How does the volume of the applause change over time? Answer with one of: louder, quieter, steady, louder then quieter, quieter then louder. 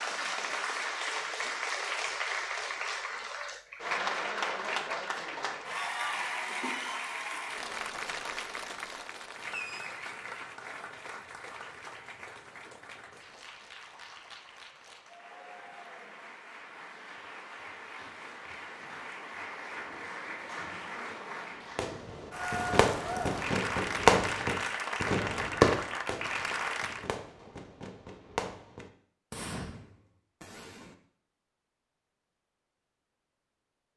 quieter then louder.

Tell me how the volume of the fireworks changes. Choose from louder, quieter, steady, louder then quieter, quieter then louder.
louder then quieter.